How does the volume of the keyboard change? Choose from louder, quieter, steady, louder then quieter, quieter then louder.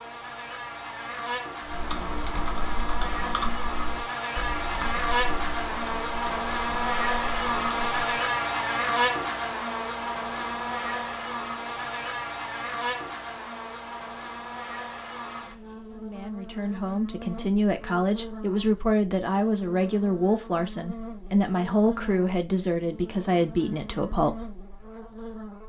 quieter.